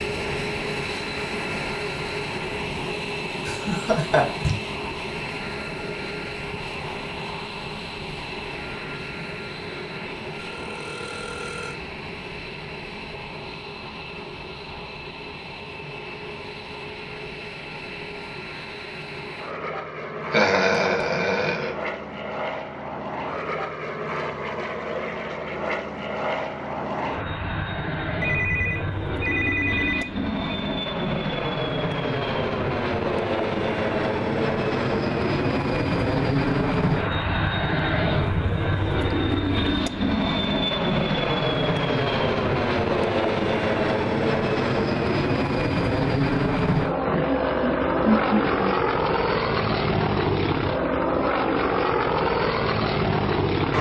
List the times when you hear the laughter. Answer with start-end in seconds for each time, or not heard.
3.5-4.5, 20.3-21.7, 47.0-48.7.